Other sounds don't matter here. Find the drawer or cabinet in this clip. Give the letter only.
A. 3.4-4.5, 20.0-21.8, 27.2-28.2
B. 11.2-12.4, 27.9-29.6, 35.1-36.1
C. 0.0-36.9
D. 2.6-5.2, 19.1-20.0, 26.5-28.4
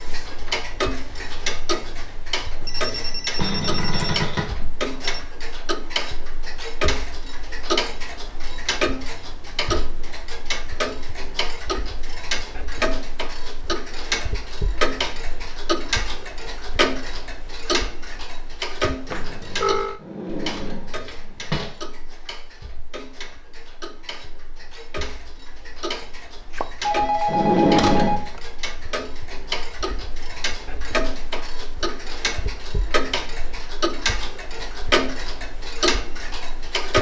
A.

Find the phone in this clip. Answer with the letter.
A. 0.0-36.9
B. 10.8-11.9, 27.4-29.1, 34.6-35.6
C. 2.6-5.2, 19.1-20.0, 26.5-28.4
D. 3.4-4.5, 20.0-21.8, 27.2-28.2
C.